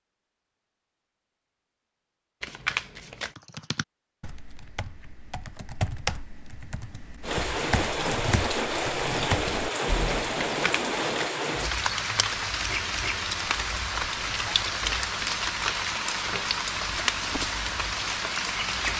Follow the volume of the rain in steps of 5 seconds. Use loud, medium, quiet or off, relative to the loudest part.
off, loud, loud, loud.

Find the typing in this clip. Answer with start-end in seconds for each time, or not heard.
3.2-10.5.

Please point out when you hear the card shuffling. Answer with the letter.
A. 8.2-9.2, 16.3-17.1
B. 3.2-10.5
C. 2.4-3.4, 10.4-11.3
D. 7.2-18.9
C.